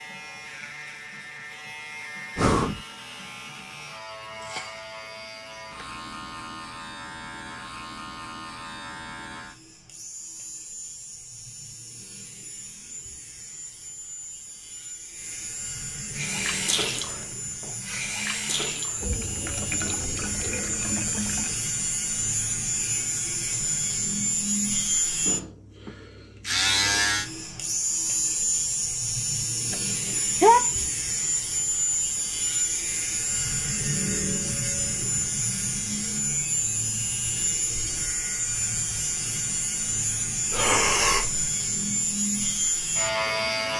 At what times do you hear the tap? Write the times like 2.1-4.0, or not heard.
16.1-21.6.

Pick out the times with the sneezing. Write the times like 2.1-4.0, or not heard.
29.7-30.9.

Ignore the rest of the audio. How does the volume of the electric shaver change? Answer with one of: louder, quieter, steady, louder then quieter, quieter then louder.
louder.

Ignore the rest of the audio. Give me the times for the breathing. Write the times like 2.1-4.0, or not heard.
2.4-2.9, 40.5-41.5.